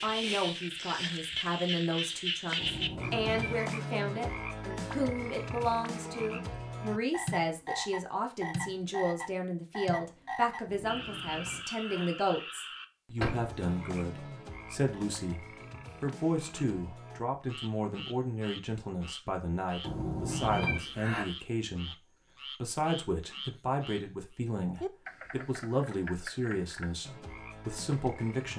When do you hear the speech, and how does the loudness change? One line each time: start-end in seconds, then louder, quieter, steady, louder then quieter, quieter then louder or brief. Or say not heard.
0.0-28.5 steady.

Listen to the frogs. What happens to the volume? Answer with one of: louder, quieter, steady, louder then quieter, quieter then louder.
quieter.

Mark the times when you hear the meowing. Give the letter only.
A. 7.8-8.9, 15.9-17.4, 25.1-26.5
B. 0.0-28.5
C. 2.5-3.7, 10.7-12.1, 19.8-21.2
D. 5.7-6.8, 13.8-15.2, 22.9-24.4
C.